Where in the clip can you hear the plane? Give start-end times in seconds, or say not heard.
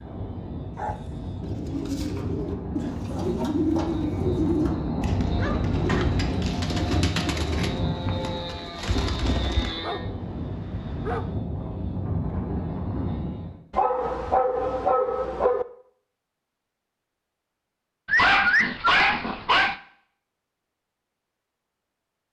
0.0-13.6.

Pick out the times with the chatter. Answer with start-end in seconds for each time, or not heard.
not heard.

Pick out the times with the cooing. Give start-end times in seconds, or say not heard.
1.4-9.8.